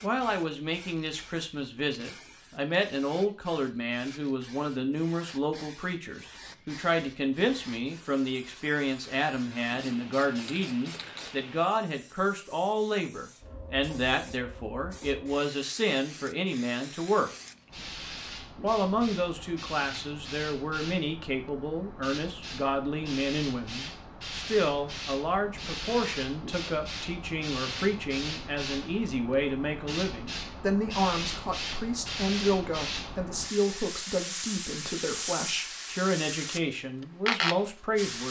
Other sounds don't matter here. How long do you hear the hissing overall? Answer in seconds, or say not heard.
38 s.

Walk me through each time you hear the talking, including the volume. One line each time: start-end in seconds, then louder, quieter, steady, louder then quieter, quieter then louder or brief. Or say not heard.
0.0-17.3 steady
18.6-38.2 steady.